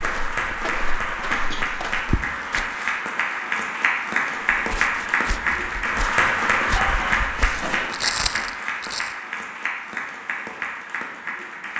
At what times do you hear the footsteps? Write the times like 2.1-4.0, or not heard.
0.0-2.9, 4.5-9.1.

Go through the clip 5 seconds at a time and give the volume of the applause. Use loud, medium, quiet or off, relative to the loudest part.
loud, loud, medium.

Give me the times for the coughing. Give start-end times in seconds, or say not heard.
1.3-1.9, 6.8-7.9.